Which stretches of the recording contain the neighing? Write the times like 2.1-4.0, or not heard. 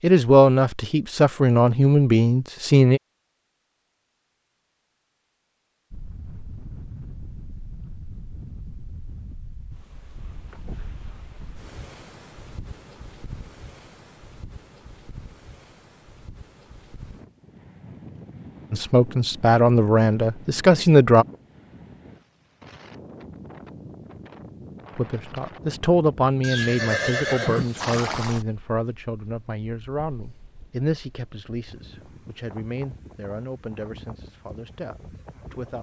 26.4-28.4.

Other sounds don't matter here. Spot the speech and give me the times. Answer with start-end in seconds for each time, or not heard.
0.0-3.0, 18.7-21.2, 24.9-35.7.